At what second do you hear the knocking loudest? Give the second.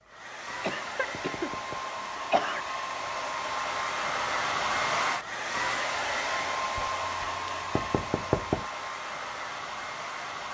8 s.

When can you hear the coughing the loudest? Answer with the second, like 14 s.
2 s.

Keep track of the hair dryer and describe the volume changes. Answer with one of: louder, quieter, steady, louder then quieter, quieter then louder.
louder then quieter.